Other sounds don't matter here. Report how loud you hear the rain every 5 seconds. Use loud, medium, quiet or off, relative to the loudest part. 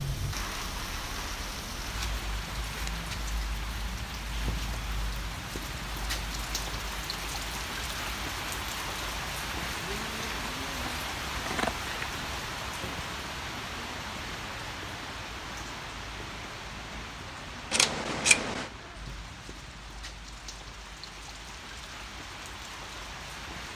loud, loud, loud, medium, medium.